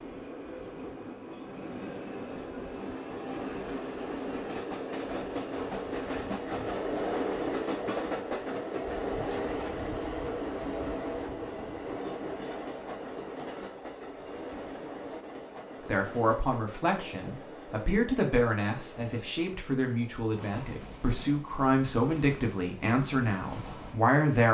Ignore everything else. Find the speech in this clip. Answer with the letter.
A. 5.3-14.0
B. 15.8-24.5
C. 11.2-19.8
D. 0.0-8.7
B.